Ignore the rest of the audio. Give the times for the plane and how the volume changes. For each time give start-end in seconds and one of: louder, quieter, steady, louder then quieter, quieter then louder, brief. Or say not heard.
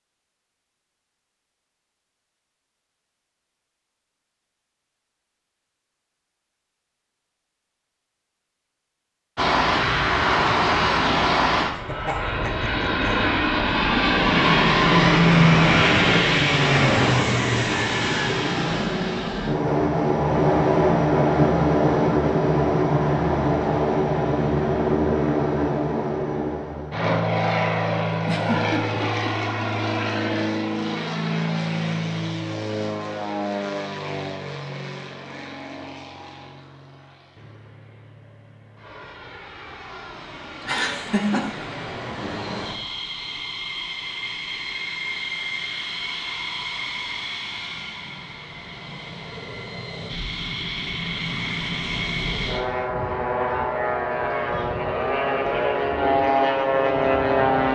9.3-57.7 quieter then louder.